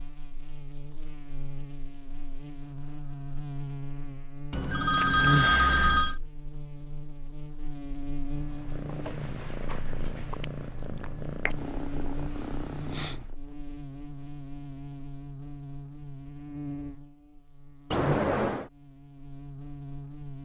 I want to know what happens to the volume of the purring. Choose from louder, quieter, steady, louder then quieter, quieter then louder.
steady.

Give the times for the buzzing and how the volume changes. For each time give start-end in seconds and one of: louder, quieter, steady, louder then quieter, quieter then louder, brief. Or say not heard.
0.0-20.4 louder then quieter.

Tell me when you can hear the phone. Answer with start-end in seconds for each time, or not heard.
4.5-6.2, 17.9-18.7.